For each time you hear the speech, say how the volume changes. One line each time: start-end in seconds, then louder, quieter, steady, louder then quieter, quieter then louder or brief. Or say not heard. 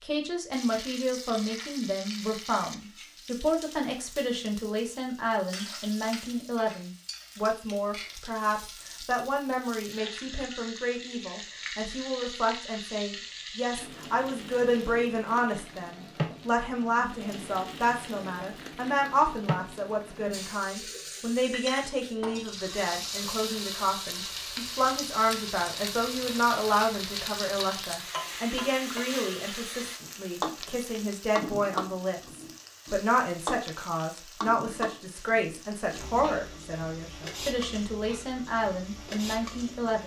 0.0-40.0 steady.